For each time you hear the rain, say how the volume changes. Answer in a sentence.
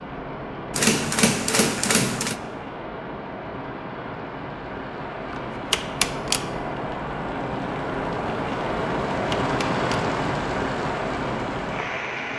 You can hear the rain from 0.0 to 12.3 s, getting louder.